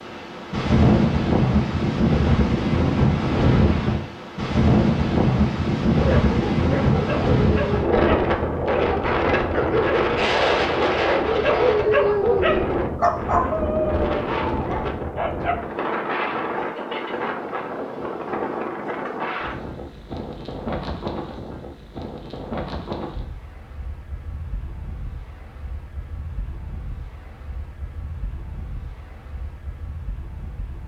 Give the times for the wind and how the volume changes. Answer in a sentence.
You can hear the wind from 0.0 to 30.8 s, getting quieter.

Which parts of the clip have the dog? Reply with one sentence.
You can hear the dog from 6.0 to 15.6 s.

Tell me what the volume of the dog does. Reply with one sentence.
The loudness of the dog goes up, then down.